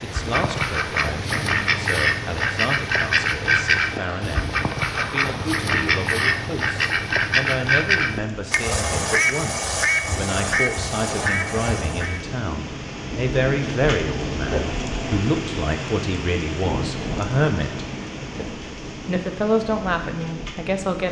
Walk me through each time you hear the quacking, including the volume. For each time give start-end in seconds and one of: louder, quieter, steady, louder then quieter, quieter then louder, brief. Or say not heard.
0.0-12.2 steady.